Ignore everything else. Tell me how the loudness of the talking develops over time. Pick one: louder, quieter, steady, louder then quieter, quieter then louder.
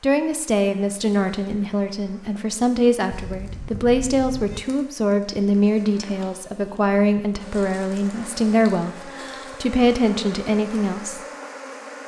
steady.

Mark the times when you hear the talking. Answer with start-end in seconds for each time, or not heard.
0.0-11.2.